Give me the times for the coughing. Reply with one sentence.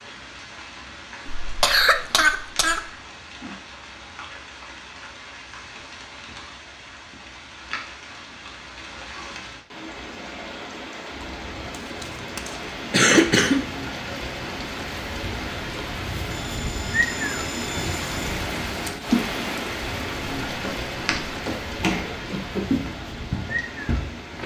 You can hear the coughing from 1.2 to 2.9 s, from 11.7 to 13.7 s and from 21.8 to 22.6 s.